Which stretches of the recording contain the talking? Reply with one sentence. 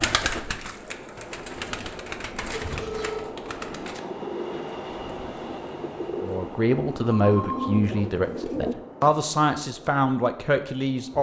The talking can be heard from 6.2 to 11.1 s.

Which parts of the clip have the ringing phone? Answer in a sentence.
You can hear the ringing phone from 2.5 to 3.3 s and from 7.2 to 7.8 s.